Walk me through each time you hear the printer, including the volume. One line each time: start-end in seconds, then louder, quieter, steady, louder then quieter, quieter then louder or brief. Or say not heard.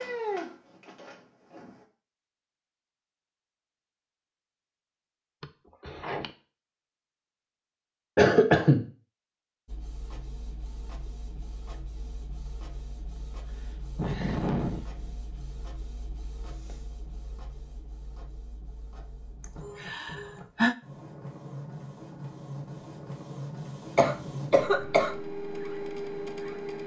0.0-1.9 brief
9.7-26.8 louder.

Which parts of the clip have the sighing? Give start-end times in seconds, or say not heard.
5.4-6.3, 13.2-15.2, 19.8-20.8.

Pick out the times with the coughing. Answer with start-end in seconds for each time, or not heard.
8.2-8.8, 23.9-25.1.